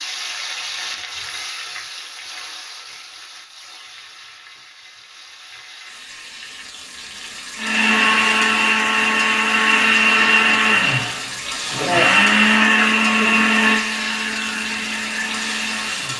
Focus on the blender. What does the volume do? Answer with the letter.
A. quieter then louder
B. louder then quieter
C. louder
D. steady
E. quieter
E.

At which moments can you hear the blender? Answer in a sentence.
You can hear the blender from 7.5 to 16.1 s.